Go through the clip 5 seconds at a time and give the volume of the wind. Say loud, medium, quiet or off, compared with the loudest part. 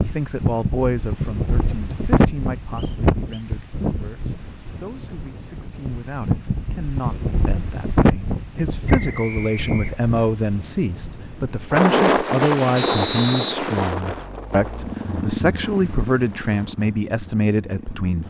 loud, loud, loud, quiet.